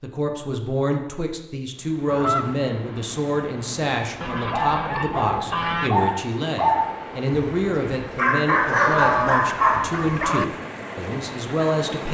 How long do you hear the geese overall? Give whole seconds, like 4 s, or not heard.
4 s.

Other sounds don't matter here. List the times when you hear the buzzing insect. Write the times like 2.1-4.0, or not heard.
not heard.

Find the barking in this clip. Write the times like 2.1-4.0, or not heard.
4.5-10.2.